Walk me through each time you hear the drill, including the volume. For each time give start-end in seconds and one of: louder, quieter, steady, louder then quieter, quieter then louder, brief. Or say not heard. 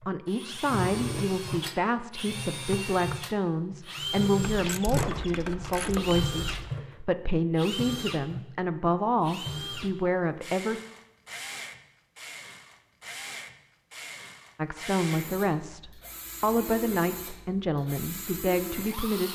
0.0-19.2 quieter.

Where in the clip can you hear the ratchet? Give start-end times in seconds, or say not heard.
4.4-6.7.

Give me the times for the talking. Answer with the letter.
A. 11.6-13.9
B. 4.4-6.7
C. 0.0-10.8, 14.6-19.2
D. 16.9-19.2
C.